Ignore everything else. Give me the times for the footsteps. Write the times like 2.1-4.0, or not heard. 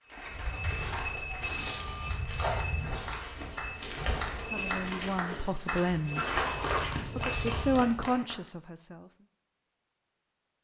0.1-8.0.